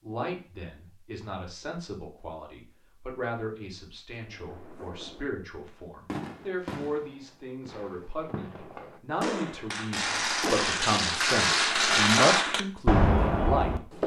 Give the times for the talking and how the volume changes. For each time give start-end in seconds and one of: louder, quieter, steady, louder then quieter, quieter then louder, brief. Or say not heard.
0.0-14.0 louder.